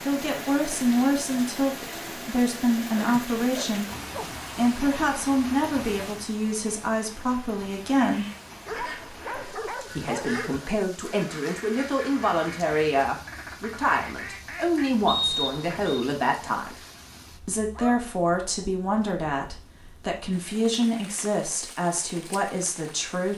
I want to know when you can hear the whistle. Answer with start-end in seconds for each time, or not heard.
15.1-16.0.